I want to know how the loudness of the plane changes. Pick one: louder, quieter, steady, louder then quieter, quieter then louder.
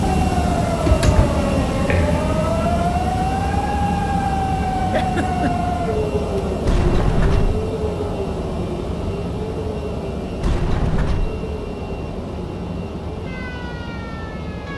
quieter.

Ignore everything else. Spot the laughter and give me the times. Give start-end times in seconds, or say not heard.
4.9-5.5.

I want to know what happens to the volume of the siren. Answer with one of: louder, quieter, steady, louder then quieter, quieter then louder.
quieter.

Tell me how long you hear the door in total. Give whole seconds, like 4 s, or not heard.
3 s.